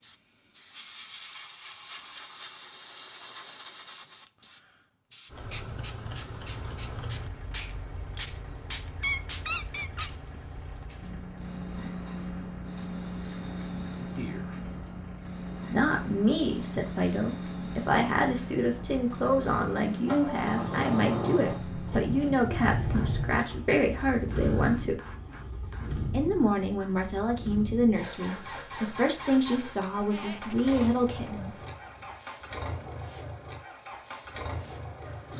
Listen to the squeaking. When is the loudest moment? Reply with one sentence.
The volume of the squeaking peaks at 9 seconds.